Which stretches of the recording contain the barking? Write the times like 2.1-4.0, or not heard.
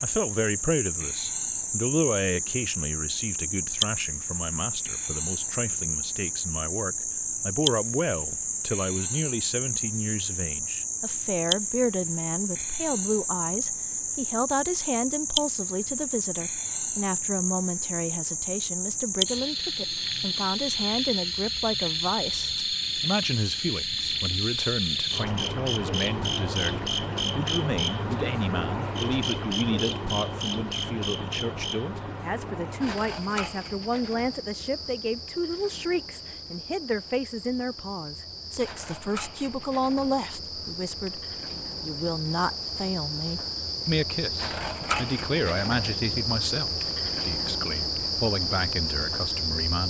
not heard.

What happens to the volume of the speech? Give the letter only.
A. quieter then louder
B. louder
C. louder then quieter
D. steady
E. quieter
D.